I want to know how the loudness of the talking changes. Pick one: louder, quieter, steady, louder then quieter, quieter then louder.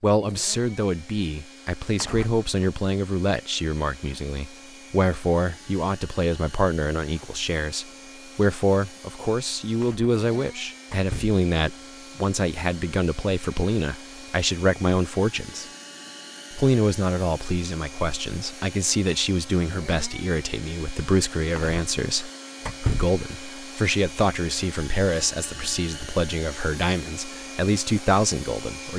steady.